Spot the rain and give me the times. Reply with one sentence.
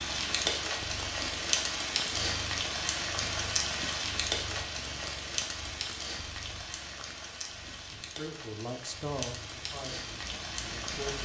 You can hear the rain from 0.0 to 11.1 s.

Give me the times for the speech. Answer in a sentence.
The speech can be heard from 7.8 to 11.1 s.